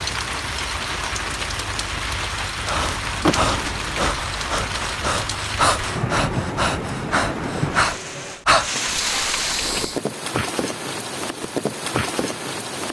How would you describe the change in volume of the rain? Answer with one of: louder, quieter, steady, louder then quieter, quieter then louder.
steady.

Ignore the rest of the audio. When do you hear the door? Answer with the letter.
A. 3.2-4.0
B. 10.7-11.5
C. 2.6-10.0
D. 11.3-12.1
A.